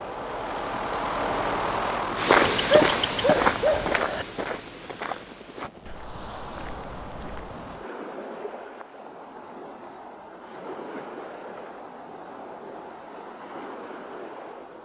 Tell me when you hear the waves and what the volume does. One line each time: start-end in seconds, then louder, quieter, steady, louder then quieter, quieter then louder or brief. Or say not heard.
5.8-14.8 steady.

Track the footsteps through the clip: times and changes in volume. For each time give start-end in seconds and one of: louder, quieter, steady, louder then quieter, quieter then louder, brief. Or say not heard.
2.1-7.5 quieter.